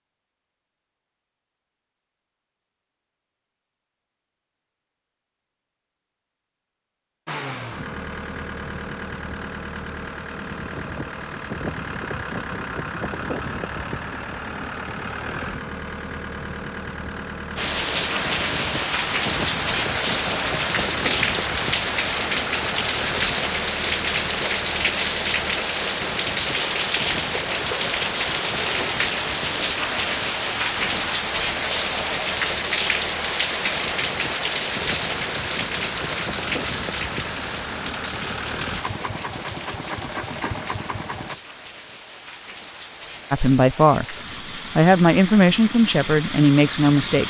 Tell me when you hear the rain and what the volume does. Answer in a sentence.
The rain can be heard from 17.6 to 47.2 s, getting quieter.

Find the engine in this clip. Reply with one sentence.
You can hear the engine from 7.2 to 41.4 s.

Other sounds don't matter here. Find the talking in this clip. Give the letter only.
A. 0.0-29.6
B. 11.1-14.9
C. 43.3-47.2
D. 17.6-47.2
C.